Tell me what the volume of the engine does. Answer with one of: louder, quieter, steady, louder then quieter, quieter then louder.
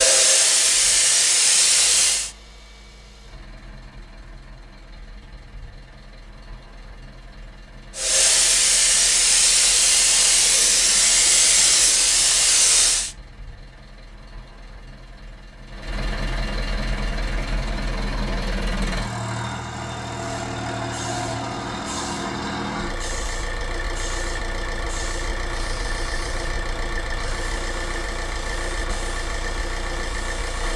louder.